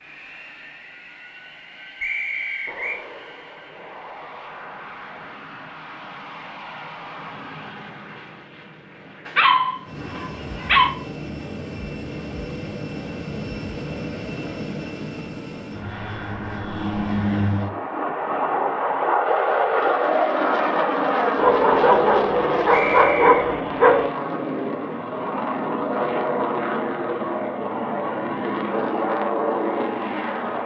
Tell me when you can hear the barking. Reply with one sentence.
You can hear the barking from 9.2 to 10.9 s and from 21.4 to 24.1 s.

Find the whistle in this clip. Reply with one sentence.
You can hear the whistle from 2.0 to 3.0 s and from 22.7 to 23.4 s.